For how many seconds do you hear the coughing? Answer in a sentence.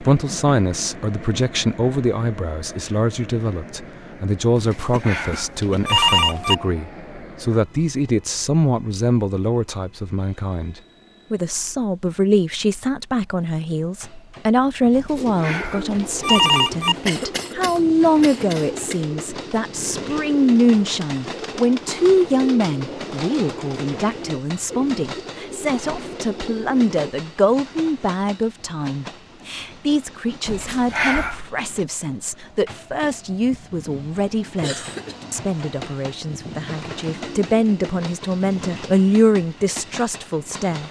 The coughing can be heard for 4 seconds in total.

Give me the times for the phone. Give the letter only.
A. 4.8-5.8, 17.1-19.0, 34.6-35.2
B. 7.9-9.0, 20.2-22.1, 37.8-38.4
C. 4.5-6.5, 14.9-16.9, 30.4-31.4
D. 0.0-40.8
C.